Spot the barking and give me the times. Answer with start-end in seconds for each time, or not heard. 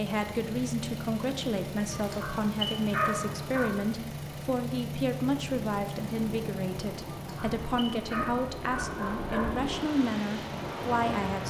1.9-3.7, 7.2-9.6.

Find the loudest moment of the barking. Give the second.
3 s.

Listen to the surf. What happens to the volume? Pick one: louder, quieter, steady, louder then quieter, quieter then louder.
louder.